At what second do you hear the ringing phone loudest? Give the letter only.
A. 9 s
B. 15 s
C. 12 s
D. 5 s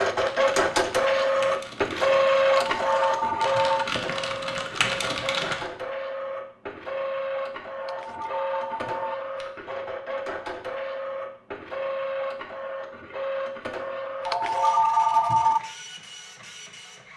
B.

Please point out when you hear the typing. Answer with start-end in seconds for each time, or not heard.
0.1-5.7.